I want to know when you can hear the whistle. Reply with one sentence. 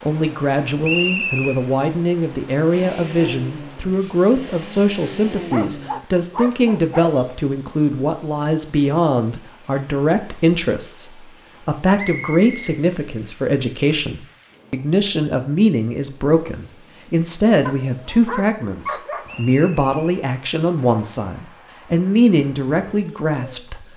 The whistle can be heard from 0.8 to 1.6 s, from 11.9 to 12.8 s and from 19.2 to 19.9 s.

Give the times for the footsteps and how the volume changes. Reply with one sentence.
The footsteps can't be heard in this clip.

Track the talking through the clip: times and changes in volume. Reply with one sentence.
The talking can be heard from 0.0 to 23.9 s, at a steady volume.